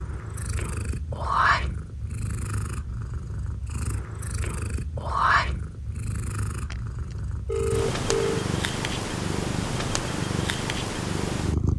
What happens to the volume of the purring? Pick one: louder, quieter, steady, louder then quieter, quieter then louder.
quieter then louder.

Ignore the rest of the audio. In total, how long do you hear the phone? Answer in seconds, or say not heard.
2 s.